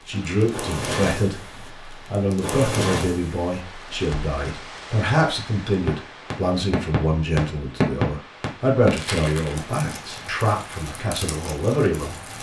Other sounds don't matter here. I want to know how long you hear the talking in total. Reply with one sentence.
You can hear the talking for 12 seconds altogether.